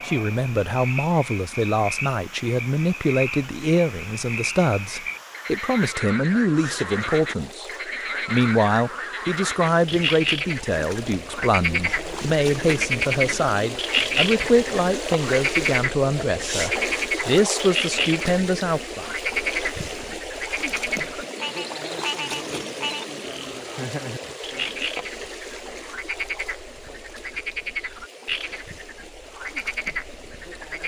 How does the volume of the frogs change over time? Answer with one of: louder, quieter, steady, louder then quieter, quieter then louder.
louder then quieter.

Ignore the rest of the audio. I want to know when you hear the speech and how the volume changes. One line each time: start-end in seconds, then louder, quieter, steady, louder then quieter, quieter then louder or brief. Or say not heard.
0.1-7.7 steady
8.2-19.1 steady.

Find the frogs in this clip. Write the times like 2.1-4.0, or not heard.
0.0-30.8.